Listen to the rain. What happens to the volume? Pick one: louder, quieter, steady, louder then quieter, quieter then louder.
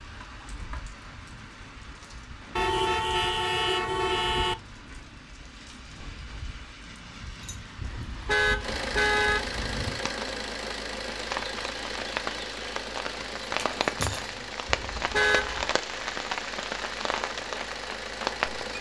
louder.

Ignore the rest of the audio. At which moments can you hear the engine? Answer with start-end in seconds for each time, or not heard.
8.6-18.7.